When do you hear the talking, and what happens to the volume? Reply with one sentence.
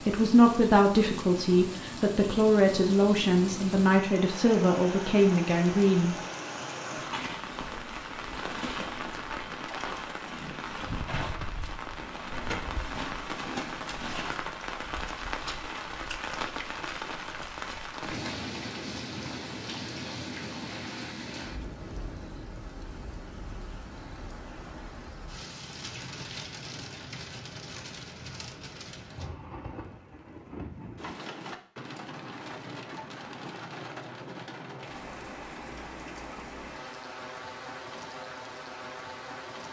You can hear the talking from 0.1 to 6.2 s, at a steady volume.